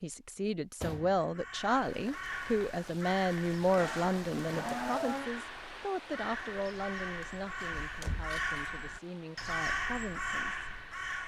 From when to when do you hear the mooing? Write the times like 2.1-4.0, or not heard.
3.8-5.3.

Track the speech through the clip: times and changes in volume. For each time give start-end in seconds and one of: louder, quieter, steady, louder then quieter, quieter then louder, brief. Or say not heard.
0.0-10.7 quieter.